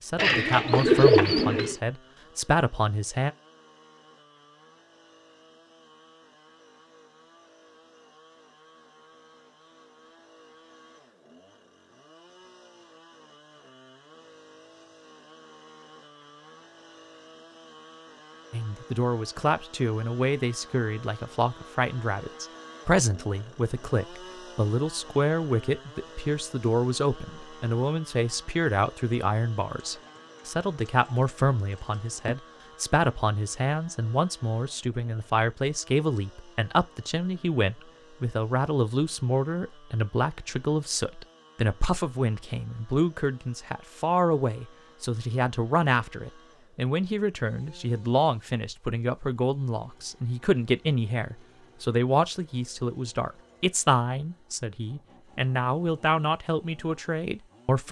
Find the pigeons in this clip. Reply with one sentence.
The pigeons can be heard from 0.1 to 1.8 s and from 29.7 to 32.4 s.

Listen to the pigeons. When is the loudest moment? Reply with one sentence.
The volume of the pigeons peaks at 1 second.